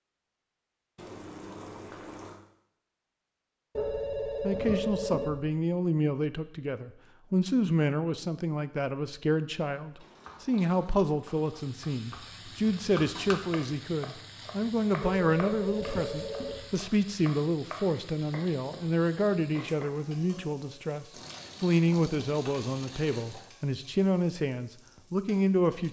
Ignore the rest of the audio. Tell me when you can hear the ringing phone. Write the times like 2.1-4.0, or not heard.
3.8-5.5, 15.0-16.8.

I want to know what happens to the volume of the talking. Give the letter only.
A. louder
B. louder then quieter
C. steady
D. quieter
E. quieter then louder
C.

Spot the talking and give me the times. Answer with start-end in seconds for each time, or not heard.
4.4-25.8.